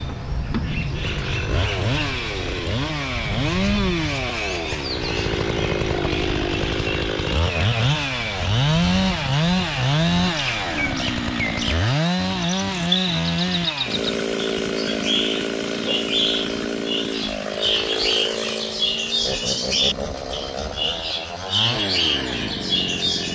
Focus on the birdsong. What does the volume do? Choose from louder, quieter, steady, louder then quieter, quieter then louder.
louder.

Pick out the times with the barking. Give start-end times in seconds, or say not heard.
not heard.